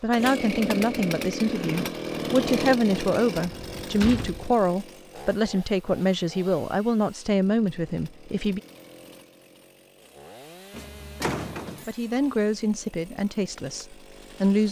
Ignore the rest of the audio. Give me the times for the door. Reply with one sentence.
The door can be heard from 3.4 to 4.5 s and from 10.7 to 11.8 s.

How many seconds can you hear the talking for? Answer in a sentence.
The talking can be heard for 11 seconds in total.